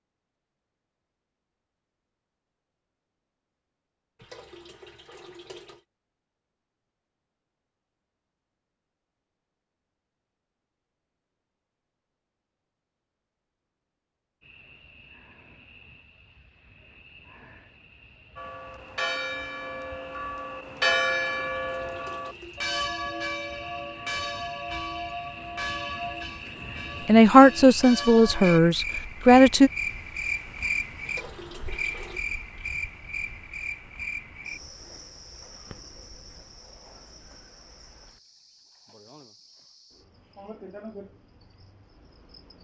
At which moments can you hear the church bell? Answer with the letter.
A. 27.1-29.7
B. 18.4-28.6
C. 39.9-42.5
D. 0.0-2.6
B.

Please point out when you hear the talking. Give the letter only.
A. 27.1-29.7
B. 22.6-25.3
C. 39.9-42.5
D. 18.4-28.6
A.